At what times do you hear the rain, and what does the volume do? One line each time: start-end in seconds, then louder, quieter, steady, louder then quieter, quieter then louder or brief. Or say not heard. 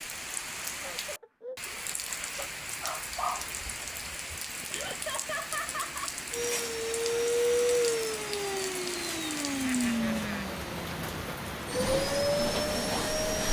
0.0-13.4 steady.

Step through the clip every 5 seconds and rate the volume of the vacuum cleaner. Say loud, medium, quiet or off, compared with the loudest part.
off, loud, loud.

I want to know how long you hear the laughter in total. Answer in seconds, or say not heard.
4 s.